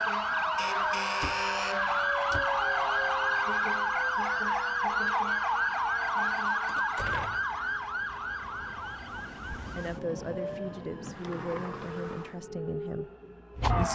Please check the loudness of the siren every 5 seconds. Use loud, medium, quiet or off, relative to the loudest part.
loud, loud, medium.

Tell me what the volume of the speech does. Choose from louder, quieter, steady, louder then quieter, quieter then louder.
steady.